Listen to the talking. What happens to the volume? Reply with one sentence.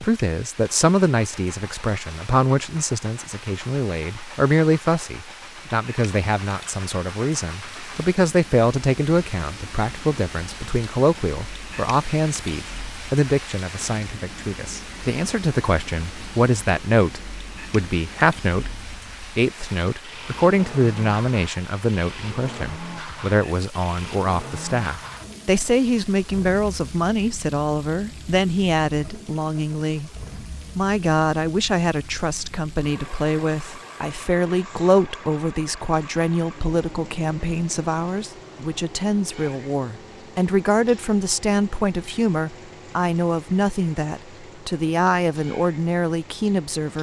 The volume of the talking stays about the same.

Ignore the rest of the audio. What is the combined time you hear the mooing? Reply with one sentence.
The mooing can't be heard in this clip.